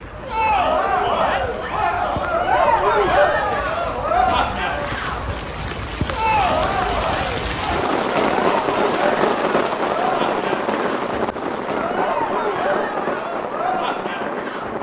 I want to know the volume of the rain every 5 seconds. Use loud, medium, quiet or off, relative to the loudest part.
medium, loud, loud.